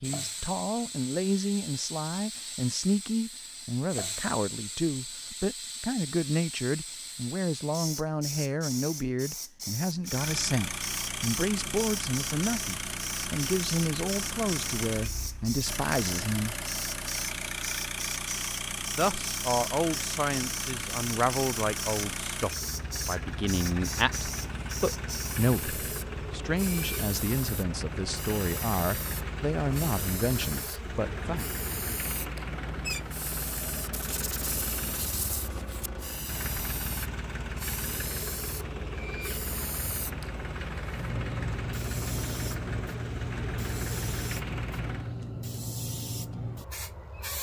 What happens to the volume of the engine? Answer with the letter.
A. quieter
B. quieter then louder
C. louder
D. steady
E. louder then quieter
D.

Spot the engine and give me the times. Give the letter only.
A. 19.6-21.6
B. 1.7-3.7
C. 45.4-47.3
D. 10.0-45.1
D.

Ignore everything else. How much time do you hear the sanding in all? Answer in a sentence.
You can hear the sanding for 2 seconds altogether.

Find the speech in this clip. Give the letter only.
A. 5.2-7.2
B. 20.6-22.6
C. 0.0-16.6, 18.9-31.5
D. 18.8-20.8
C.